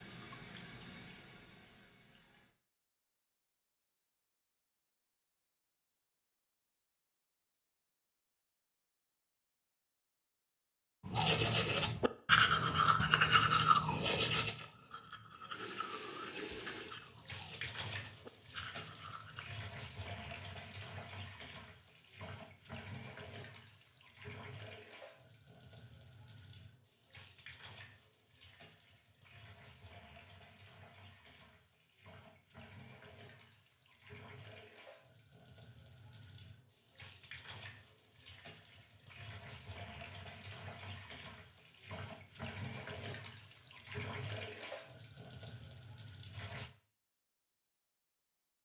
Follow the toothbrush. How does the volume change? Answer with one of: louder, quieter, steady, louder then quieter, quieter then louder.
quieter.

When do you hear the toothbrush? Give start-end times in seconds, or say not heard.
11.1-19.5.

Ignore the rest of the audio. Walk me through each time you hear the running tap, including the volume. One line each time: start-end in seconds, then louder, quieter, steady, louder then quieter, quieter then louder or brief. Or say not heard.
0.0-2.5 brief
15.5-46.7 quieter then louder.